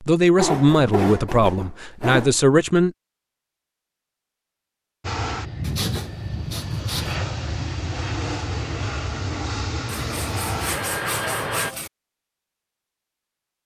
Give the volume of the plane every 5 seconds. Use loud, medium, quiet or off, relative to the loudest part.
off, loud, loud.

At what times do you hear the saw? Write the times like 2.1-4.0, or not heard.
0.3-2.4, 5.6-7.2, 9.8-11.9.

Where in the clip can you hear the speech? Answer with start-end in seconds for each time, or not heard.
0.0-2.9.